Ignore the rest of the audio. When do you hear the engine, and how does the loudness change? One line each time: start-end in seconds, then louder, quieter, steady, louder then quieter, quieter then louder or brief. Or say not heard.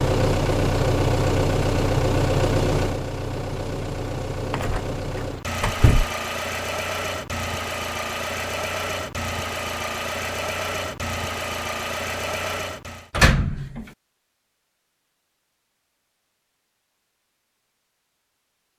0.0-13.1 quieter.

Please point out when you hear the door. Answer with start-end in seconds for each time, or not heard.
4.5-4.9, 5.6-6.0, 13.1-13.8.